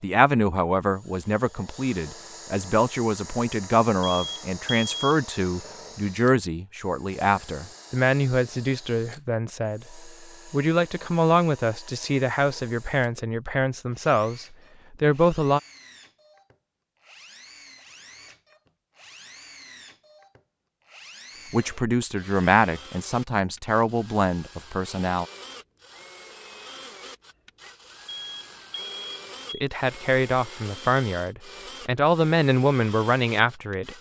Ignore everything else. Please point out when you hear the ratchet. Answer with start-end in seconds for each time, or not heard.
not heard.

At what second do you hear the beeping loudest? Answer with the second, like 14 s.
5 s.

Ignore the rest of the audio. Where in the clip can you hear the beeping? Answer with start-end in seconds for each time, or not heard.
4.0-5.2, 28.1-29.6.